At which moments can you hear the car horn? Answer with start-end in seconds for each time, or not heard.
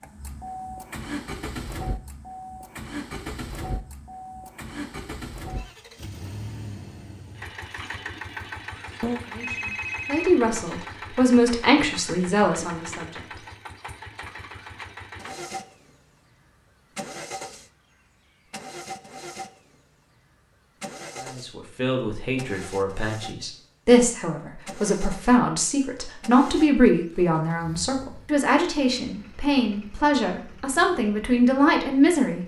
not heard.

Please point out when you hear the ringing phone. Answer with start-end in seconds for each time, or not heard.
9.0-10.3.